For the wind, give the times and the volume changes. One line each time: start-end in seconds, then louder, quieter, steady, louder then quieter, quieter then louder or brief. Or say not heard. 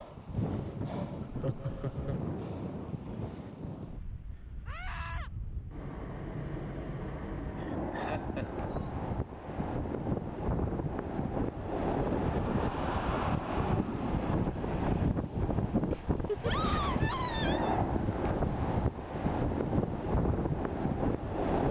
0.0-21.6 louder.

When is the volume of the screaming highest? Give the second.
17 s.